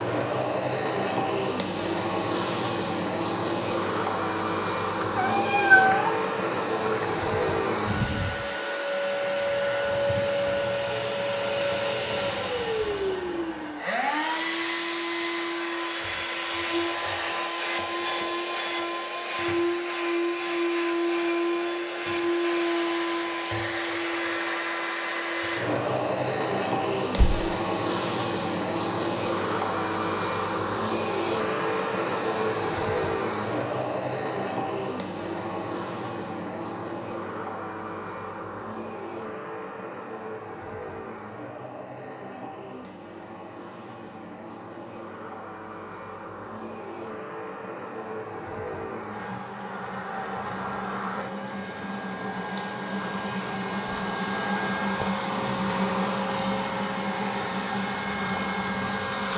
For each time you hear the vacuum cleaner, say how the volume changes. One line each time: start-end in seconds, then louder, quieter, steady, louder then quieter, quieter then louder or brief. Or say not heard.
0.0-59.3 quieter then louder.